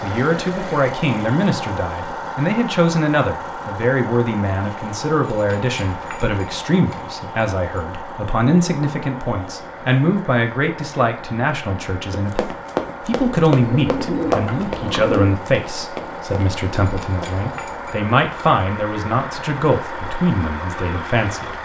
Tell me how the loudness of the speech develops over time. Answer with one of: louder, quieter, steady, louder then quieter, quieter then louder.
steady.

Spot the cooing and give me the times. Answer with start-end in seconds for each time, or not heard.
13.6-15.3.